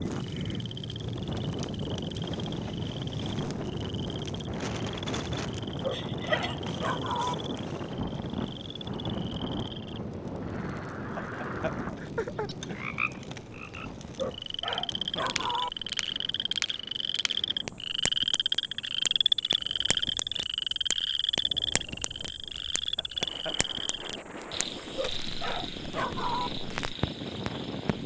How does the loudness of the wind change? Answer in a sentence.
The loudness of the wind goes down, then up.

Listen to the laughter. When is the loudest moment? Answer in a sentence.
The loudest moment of the laughter is at 6 seconds.